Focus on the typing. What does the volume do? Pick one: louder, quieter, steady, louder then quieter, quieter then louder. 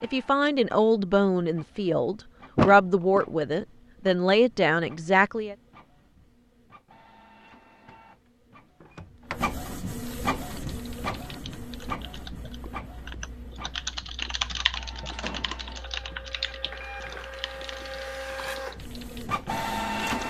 louder then quieter.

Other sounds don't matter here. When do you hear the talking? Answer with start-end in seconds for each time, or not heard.
0.0-5.5.